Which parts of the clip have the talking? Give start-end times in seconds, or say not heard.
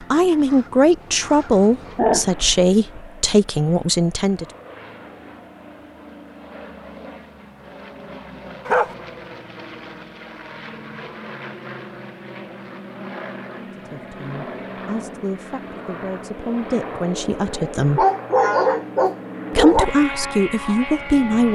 0.1-4.5, 13.6-18.1, 19.5-21.4.